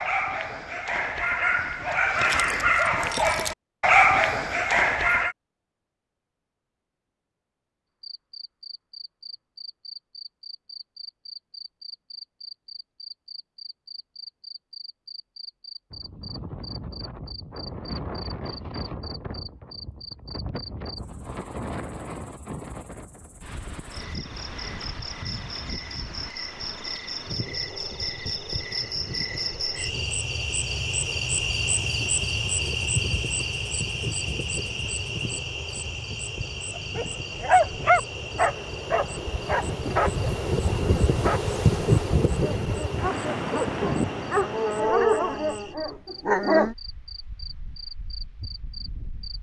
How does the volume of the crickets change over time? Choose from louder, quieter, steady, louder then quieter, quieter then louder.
louder then quieter.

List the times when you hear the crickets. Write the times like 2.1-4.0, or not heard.
8.0-49.3.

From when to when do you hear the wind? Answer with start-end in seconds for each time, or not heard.
15.9-49.3.